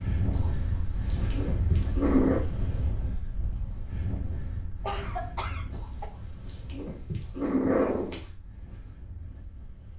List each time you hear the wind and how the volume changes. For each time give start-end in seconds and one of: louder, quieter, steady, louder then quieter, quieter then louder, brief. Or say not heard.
0.0-9.9 quieter.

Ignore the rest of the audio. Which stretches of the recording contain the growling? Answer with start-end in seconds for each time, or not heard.
0.3-2.4, 5.7-8.2.